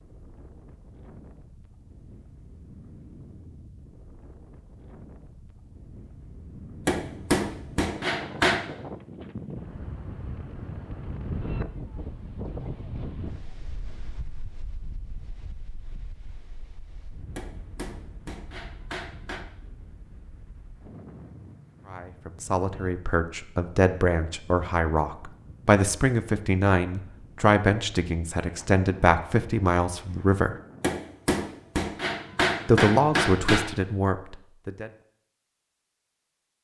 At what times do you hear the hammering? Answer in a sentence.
You can hear the hammering from 6.8 to 8.7 s, from 17.4 to 19.4 s and from 30.8 to 33.6 s.